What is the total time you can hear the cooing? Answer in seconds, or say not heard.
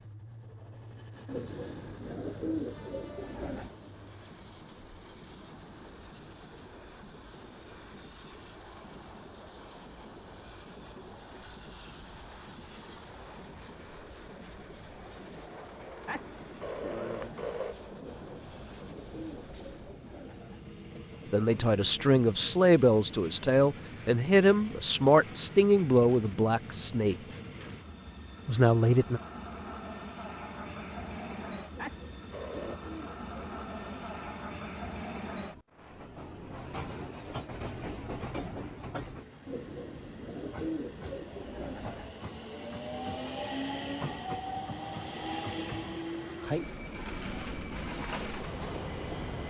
10 s.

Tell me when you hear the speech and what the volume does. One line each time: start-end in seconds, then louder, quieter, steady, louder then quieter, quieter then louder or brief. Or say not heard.
21.3-27.1 steady
28.4-29.2 brief.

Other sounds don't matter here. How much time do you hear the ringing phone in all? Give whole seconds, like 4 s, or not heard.
3 s.